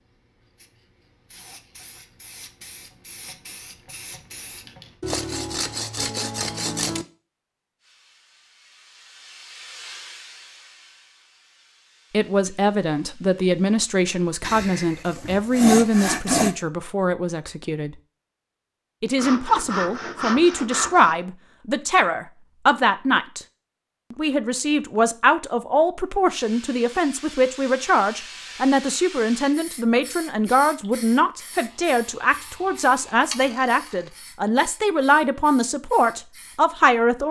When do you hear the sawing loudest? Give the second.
16 s.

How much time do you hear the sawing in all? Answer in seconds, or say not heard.
8 s.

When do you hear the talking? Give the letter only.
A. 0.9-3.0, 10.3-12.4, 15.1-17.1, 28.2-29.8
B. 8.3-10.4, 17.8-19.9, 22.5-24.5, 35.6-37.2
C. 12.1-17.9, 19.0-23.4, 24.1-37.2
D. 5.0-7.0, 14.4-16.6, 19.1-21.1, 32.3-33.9
C.